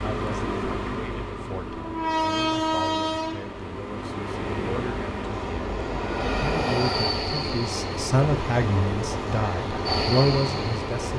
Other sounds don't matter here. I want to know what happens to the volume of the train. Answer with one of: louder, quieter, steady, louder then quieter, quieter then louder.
steady.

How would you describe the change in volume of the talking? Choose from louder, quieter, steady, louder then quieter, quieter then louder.
louder.